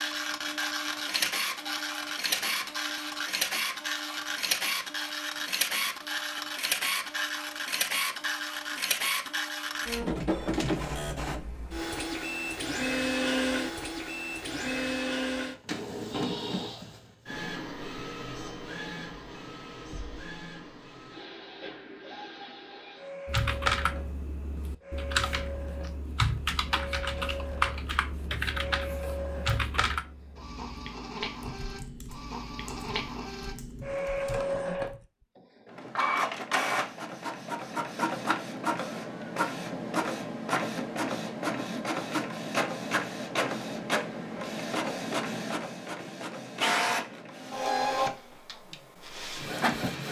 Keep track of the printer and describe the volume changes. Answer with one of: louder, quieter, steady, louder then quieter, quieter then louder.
quieter then louder.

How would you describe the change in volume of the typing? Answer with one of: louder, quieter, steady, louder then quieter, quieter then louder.
quieter.